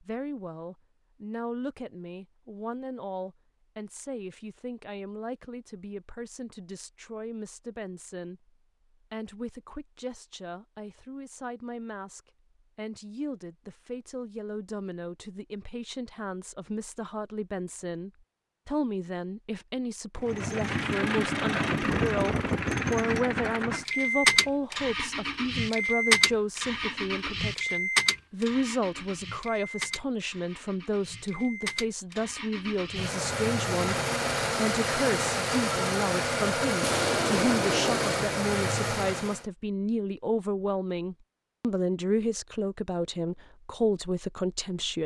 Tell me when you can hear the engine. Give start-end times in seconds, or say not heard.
20.2-39.4.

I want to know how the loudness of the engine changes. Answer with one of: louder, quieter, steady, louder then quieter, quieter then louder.
quieter then louder.